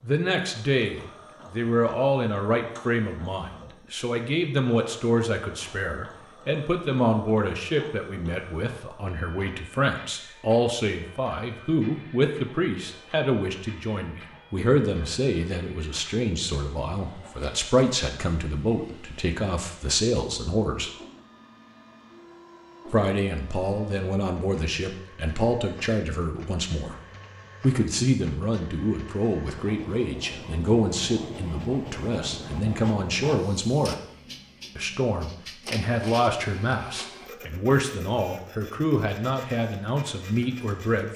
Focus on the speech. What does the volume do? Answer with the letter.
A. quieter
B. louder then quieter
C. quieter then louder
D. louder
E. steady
E.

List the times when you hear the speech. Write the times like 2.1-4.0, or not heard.
0.0-20.9, 22.9-26.9, 27.6-34.0, 34.8-41.1.